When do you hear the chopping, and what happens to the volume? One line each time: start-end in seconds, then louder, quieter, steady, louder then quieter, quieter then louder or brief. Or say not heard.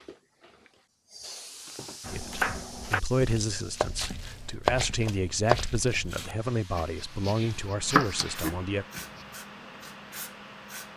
2.0-9.2 quieter then louder.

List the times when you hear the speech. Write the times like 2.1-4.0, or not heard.
2.1-8.8.